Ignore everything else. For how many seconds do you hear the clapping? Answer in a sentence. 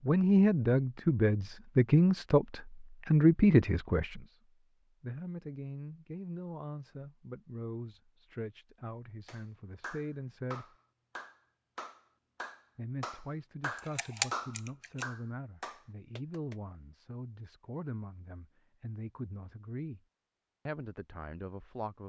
The clapping can be heard for 7 seconds in total.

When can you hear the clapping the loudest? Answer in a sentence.
The volume of the clapping peaks at 14 seconds.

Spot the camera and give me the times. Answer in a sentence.
The camera can be heard from 13.8 to 15.1 s.